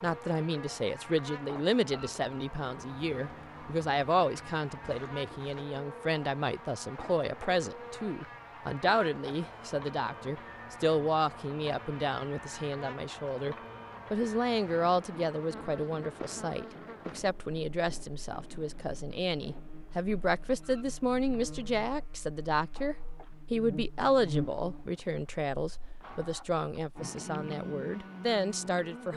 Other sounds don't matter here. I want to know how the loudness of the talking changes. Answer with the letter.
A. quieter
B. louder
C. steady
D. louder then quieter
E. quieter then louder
C.